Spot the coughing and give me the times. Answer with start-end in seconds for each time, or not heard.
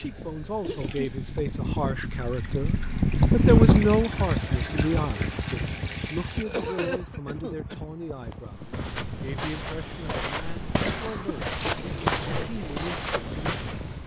0.6-1.1, 6.4-7.8, 10.7-11.3.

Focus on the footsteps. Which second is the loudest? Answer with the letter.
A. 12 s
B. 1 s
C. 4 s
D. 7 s
A.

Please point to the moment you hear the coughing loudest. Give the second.
7 s.